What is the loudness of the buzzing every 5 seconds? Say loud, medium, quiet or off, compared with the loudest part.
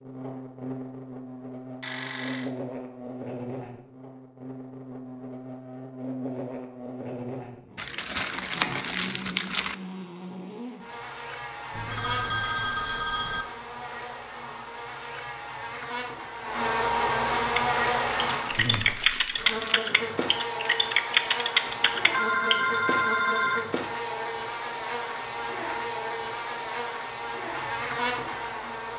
medium, medium, medium, loud, loud, loud.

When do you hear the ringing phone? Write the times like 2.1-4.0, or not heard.
1.8-2.5, 11.7-13.4, 21.6-23.7.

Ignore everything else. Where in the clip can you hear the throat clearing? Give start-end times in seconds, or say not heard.
not heard.